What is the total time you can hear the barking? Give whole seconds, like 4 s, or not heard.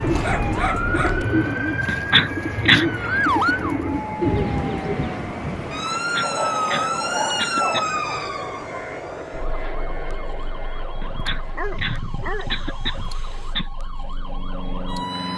5 s.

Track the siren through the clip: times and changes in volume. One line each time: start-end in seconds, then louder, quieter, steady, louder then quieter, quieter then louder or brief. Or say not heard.
0.0-15.3 quieter.